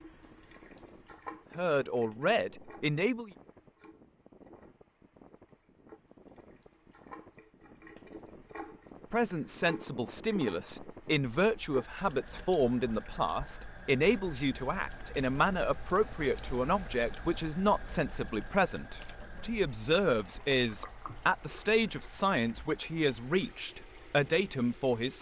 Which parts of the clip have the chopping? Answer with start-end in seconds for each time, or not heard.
not heard.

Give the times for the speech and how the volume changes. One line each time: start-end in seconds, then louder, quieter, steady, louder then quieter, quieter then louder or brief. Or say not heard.
1.6-3.3 brief
9.1-25.1 steady.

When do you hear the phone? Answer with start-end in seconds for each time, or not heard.
not heard.